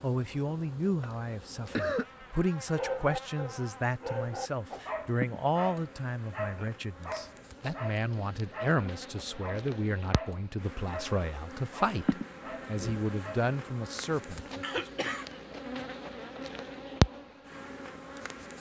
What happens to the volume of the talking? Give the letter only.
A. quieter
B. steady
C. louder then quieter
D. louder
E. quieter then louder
B.